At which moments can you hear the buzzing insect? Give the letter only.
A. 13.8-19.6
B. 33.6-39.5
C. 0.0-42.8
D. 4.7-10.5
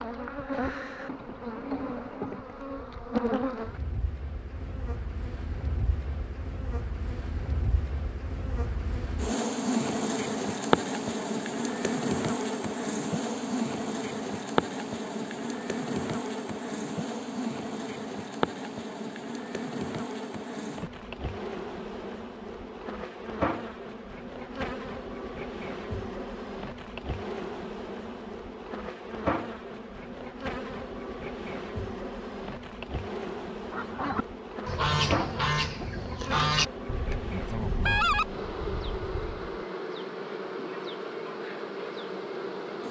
C.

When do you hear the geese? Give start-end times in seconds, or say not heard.
33.6-39.5.